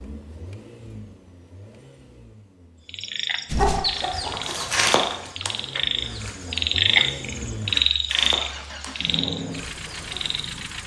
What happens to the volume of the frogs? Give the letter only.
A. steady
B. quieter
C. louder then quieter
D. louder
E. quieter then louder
C.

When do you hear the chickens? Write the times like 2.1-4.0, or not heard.
3.5-10.3.